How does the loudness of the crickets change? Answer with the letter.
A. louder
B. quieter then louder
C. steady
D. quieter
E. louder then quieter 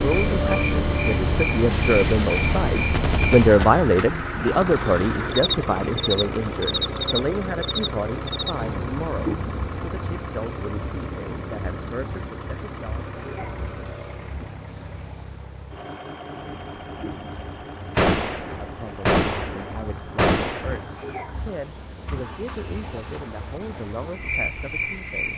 B.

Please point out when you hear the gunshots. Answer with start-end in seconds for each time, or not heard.
1.7-3.7, 17.9-20.8.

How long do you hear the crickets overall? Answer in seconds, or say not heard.
25 s.